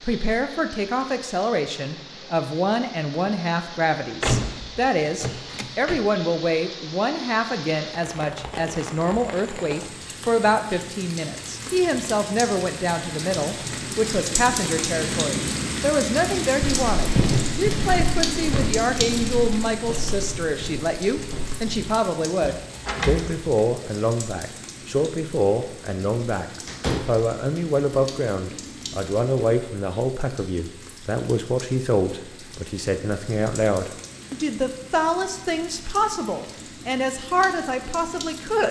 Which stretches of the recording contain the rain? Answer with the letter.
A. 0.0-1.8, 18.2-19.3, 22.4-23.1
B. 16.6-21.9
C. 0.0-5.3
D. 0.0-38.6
D.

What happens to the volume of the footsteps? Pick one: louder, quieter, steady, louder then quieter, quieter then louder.
quieter.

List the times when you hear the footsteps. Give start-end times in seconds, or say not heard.
16.6-21.9.